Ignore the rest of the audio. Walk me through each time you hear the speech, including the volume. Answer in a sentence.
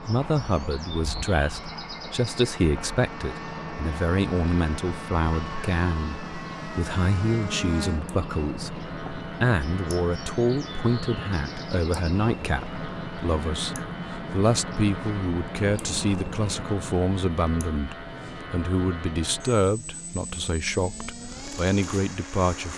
You can hear the speech from 0.0 to 22.7 s, at a steady volume.